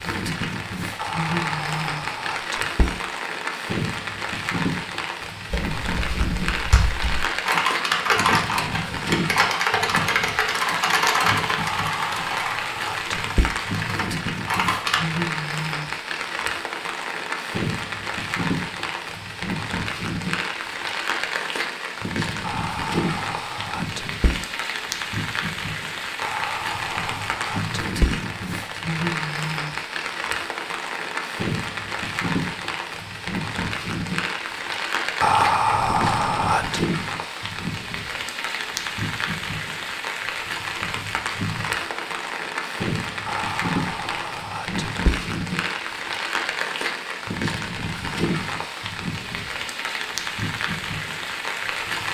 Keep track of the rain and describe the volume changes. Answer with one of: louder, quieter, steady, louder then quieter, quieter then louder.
steady.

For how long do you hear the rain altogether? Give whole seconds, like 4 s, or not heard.
52 s.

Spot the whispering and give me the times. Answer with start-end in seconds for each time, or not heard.
0.9-3.0, 11.6-13.6, 22.4-24.4, 26.2-28.2, 35.2-36.8, 43.2-45.2.